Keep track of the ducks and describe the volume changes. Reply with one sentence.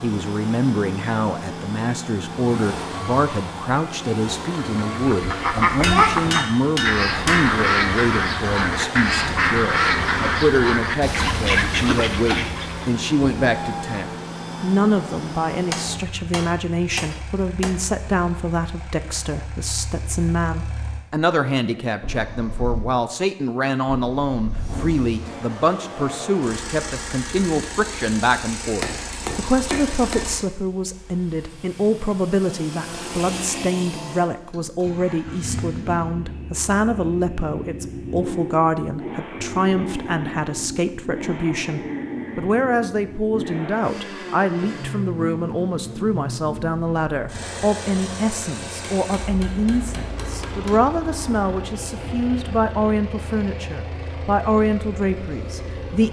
The loudness of the ducks stays about the same.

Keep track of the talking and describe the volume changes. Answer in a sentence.
The loudness of the talking stays about the same.